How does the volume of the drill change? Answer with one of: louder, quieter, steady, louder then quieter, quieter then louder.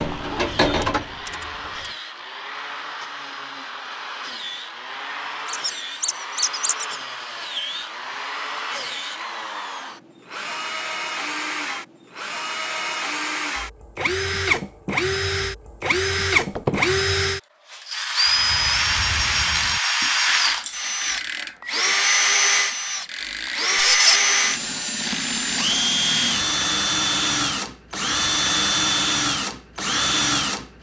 louder.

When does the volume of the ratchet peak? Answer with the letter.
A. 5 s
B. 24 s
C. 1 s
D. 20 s
C.